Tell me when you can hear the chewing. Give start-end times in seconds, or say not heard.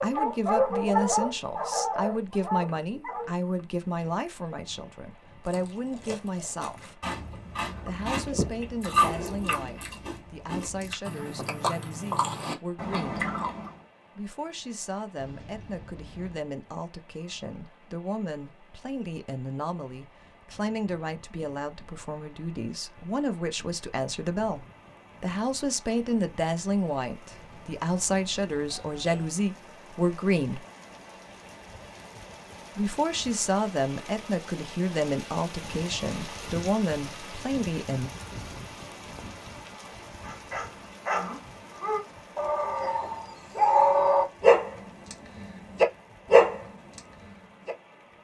5.5-13.8.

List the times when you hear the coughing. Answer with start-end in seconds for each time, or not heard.
not heard.